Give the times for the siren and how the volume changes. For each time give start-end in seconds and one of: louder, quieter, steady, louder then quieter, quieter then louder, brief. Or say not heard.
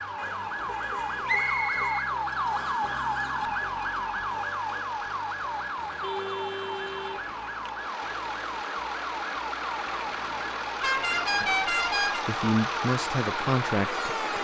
0.0-14.3 quieter.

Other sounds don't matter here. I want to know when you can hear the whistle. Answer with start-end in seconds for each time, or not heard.
1.2-2.9.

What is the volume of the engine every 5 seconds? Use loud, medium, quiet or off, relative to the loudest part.
quiet, medium, loud.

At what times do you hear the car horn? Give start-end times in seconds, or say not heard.
0.1-1.9, 6.0-7.2, 10.8-12.2.